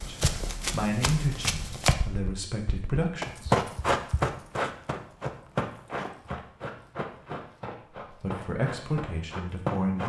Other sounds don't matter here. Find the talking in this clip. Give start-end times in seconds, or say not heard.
0.1-3.6, 8.1-10.0.